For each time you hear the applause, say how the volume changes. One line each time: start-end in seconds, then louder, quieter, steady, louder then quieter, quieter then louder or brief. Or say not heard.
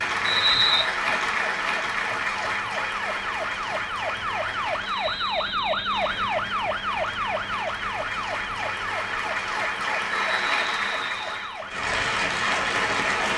0.0-13.3 quieter then louder.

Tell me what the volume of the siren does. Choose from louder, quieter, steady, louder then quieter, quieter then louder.
louder then quieter.